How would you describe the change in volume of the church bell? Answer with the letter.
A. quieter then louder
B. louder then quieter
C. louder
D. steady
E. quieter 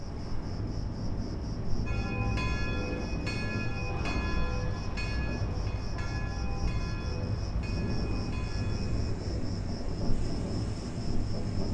E.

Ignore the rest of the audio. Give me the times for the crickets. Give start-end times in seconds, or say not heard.
0.0-11.7.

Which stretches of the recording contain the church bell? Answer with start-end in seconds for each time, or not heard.
1.9-9.1.